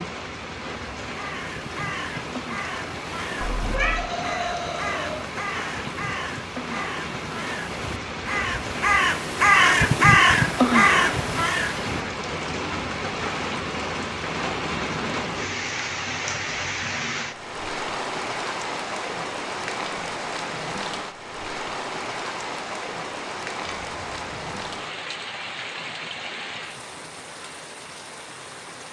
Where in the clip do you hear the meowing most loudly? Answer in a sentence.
The loudest moment of the meowing is at 4 seconds.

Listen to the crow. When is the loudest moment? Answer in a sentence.
The volume of the crow peaks at 10 seconds.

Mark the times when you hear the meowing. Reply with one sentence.
You can hear the meowing from 3.4 to 4.1 s and from 23.8 to 24.8 s.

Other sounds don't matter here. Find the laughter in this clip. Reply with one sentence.
You can hear the laughter from 3.8 to 5.2 s.